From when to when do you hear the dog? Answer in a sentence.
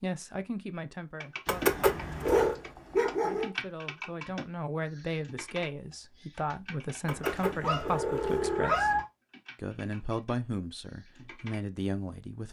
You can hear the dog from 1.9 to 3.5 s and from 7.2 to 8.9 s.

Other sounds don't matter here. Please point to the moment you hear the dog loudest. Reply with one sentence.
The loudest moment of the dog is at 3 seconds.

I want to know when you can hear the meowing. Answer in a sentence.
You can hear the meowing from 1.4 to 2.5 s and from 7.0 to 9.1 s.